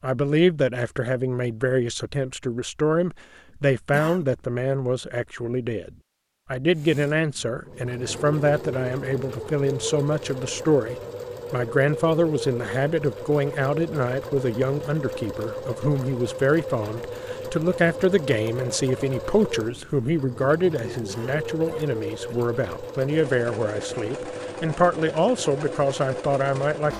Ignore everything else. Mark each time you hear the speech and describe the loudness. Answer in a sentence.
You can hear the speech from 0.0 to 26.9 s, at a steady volume.